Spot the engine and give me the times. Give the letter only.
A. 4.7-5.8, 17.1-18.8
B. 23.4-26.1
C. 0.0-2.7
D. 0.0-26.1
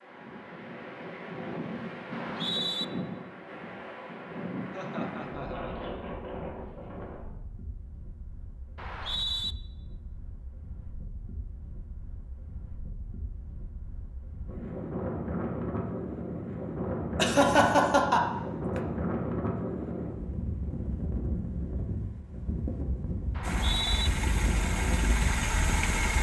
B.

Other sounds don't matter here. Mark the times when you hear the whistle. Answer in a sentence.
You can hear the whistle from 2.1 to 2.9 s, from 8.8 to 9.6 s and from 23.4 to 24.1 s.